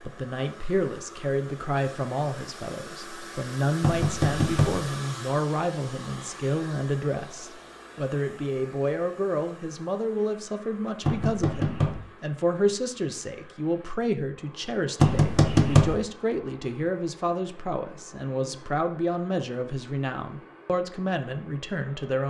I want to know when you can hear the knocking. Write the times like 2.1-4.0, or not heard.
3.8-4.8, 11.0-12.0, 14.9-15.9.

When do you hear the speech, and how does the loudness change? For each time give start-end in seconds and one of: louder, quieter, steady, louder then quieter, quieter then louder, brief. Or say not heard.
0.0-22.2 steady.